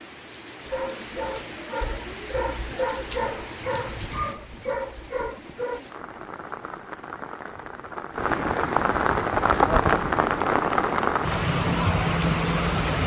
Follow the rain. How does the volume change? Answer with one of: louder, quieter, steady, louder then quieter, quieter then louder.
louder.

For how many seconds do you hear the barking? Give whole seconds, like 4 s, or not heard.
5 s.